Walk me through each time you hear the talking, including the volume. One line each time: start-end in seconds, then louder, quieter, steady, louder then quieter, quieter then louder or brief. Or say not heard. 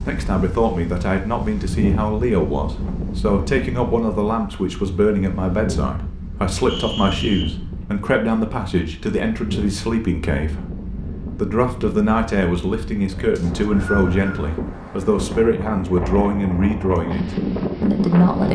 0.0-18.5 steady.